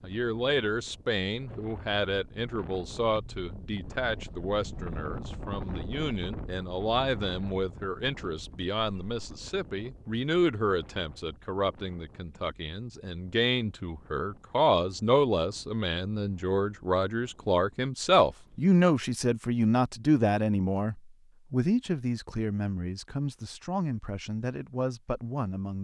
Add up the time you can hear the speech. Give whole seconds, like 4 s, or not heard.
26 s.